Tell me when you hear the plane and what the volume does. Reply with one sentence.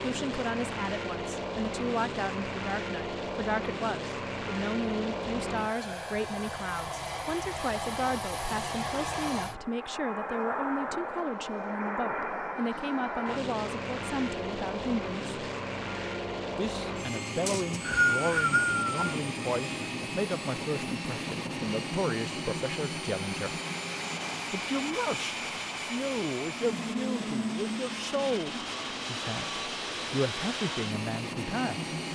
You can hear the plane from 0.0 to 32.1 s, at a steady volume.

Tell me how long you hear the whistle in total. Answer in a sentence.
The whistle can be heard for 2 seconds in total.